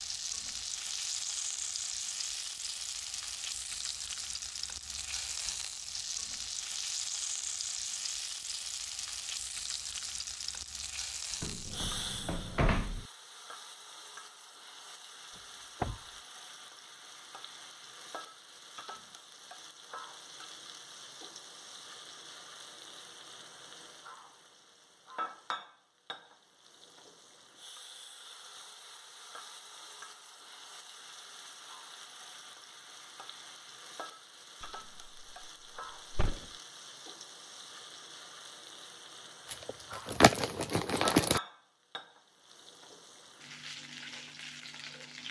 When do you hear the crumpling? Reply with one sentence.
The crumpling can be heard from 39.5 to 41.4 s.